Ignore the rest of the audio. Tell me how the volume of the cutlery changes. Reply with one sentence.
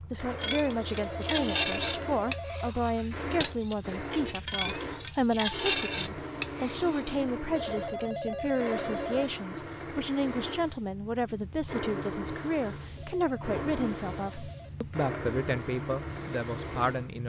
The volume of the cutlery goes down, then up.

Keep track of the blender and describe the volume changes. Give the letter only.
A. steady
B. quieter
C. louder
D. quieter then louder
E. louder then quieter
A.